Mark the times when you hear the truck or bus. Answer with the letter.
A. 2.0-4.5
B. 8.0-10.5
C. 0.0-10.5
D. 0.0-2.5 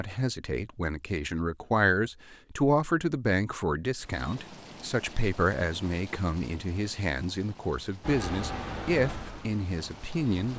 B.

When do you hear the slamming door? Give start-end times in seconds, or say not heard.
not heard.